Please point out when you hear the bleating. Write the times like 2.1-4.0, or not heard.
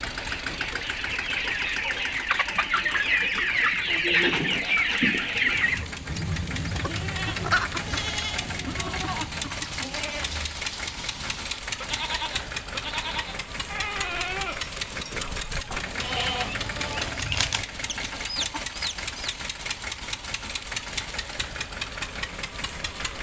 5.5-17.1.